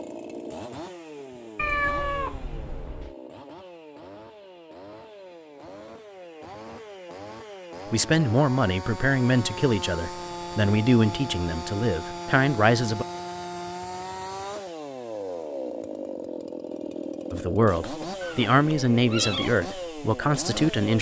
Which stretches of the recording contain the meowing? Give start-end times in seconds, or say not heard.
1.6-3.1, 18.2-19.5.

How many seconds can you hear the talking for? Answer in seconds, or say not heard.
9 s.